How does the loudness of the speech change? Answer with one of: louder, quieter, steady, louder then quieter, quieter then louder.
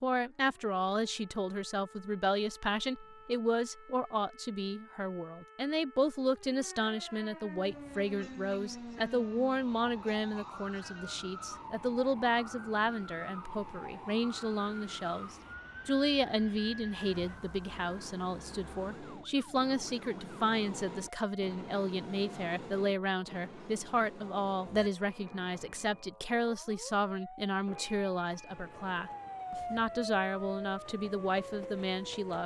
steady.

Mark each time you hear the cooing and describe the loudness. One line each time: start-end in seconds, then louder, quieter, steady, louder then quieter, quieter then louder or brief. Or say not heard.
not heard.